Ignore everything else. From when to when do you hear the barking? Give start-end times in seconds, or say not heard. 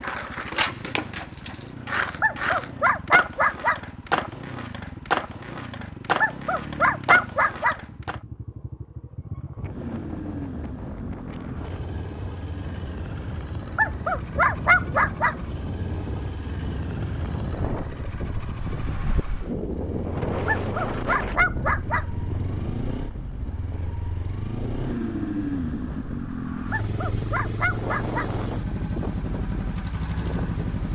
2.2-3.8, 6.2-7.8, 13.8-15.3, 20.4-22.1, 26.7-28.3.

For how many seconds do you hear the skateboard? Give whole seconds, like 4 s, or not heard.
8 s.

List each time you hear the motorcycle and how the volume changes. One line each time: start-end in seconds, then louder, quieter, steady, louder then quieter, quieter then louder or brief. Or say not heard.
0.0-30.8 louder.